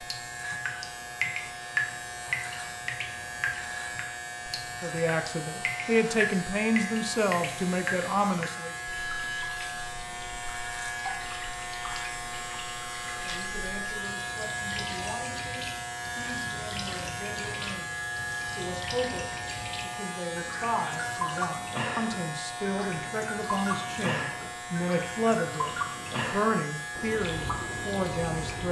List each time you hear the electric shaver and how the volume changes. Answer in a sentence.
You can hear the electric shaver from 0.0 to 28.6 s, at a steady volume.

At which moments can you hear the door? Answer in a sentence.
The door can't be heard in this clip.